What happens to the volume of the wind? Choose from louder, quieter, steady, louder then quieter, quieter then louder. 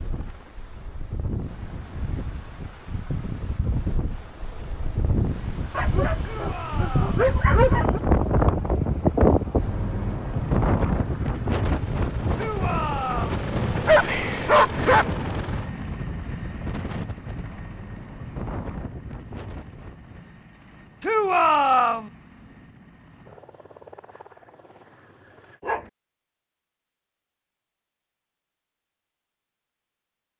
louder then quieter.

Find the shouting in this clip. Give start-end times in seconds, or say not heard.
6.2-7.2, 12.3-13.4, 21.0-22.1.